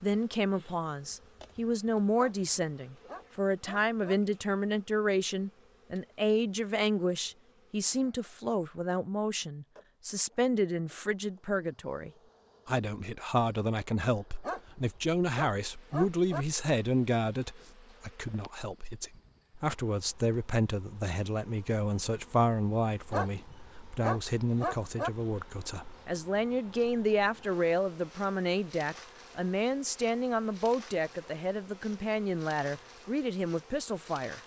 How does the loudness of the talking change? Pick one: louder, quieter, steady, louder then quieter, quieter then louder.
steady.